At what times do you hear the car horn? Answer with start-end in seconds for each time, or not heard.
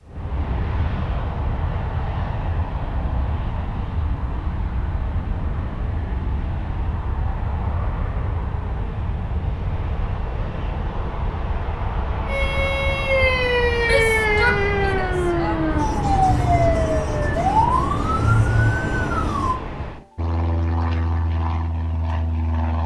not heard.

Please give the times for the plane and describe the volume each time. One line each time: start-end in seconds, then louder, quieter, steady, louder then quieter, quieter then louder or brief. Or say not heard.
0.1-22.8 steady.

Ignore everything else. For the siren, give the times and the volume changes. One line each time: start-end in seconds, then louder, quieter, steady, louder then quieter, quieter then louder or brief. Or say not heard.
12.2-19.6 steady.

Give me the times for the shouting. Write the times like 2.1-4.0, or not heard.
13.8-15.6.